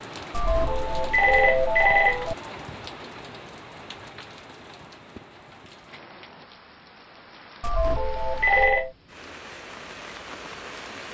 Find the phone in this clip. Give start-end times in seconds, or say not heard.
0.3-2.4, 7.6-8.9.